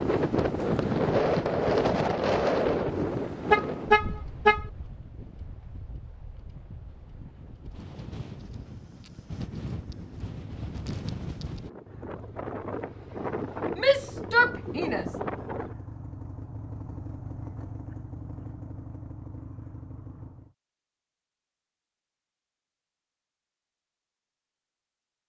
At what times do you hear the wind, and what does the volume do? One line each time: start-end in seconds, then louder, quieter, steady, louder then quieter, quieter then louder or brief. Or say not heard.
0.0-15.8 quieter then louder.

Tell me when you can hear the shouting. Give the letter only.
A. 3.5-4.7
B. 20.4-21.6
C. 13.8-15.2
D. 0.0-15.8
C.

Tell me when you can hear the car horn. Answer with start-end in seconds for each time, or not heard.
3.5-4.7.